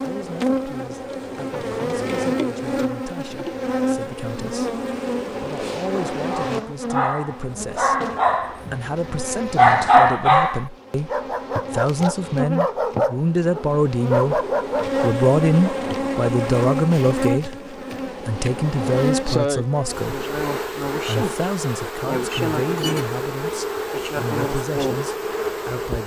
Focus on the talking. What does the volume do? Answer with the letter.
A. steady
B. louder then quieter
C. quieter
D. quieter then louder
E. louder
B.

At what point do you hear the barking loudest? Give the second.
10 s.